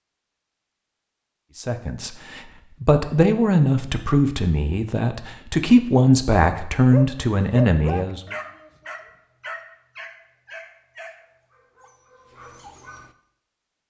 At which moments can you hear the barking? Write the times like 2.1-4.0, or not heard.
6.9-13.2.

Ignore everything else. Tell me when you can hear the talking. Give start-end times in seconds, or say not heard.
1.6-8.2.